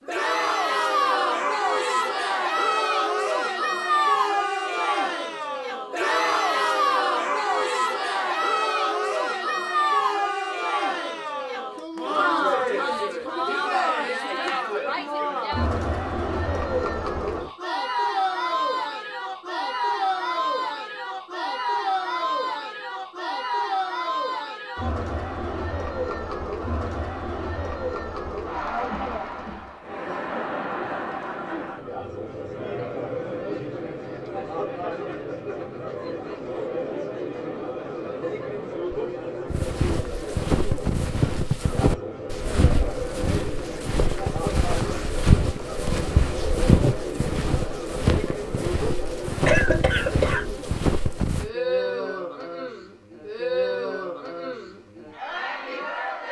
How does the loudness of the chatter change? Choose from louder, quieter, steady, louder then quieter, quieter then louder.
quieter.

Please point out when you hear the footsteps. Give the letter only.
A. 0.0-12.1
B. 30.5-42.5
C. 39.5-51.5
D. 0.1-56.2
C.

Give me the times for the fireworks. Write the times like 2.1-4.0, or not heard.
not heard.